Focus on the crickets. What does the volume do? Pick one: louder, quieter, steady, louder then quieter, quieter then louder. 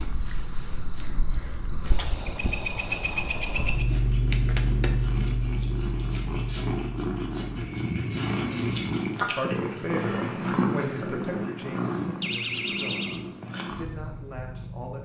louder then quieter.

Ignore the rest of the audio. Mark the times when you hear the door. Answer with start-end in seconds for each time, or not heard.
12.2-13.2.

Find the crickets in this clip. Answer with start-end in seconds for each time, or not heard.
0.0-9.1.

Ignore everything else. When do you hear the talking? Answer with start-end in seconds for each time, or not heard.
9.3-15.0.